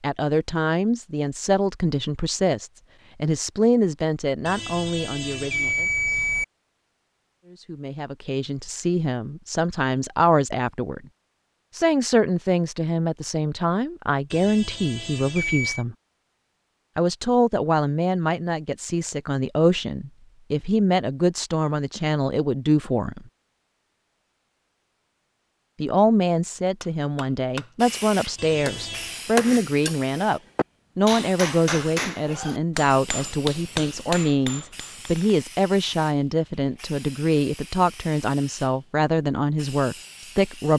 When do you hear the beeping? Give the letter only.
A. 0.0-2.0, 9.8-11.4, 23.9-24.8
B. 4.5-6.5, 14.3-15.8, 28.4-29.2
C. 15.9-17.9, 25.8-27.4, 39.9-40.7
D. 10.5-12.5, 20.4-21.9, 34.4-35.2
B.